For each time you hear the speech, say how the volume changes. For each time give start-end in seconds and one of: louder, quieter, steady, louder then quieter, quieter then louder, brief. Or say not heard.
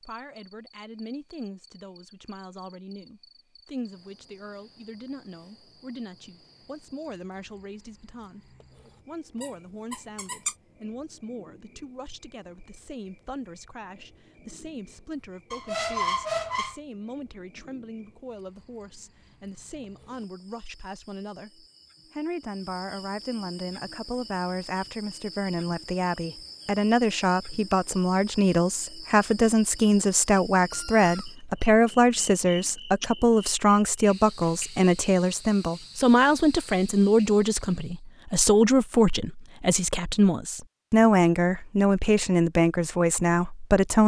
0.0-44.0 louder.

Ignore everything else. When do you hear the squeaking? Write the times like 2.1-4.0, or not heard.
9.4-10.6, 15.5-16.8, 30.7-31.7.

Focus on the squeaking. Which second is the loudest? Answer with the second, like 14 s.
16 s.